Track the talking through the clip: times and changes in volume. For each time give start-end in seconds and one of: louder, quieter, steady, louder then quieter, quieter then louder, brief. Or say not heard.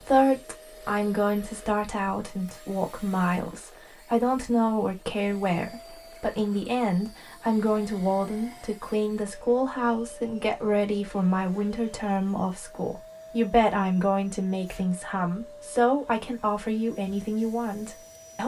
0.0-18.4 steady.